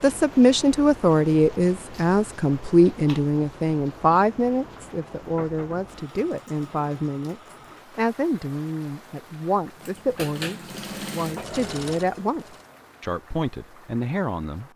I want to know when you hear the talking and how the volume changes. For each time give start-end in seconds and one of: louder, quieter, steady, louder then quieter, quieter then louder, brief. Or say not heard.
0.0-14.7 quieter.